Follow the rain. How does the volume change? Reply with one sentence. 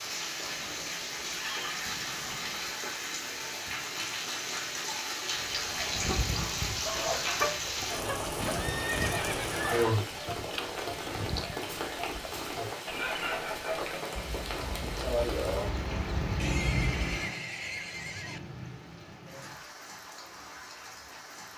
The loudness of the rain goes down.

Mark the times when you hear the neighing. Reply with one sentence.
The neighing can be heard from 0.5 to 2.8 s, from 8.4 to 10.0 s and from 16.4 to 18.4 s.